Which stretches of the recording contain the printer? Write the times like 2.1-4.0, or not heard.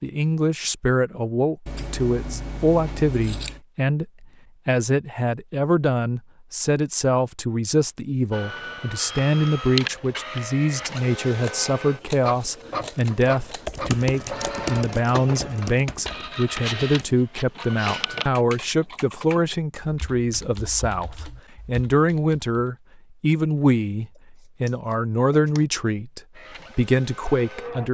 8.3-18.3, 26.4-27.8.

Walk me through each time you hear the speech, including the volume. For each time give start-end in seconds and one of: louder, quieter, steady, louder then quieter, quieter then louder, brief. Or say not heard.
0.0-27.8 steady.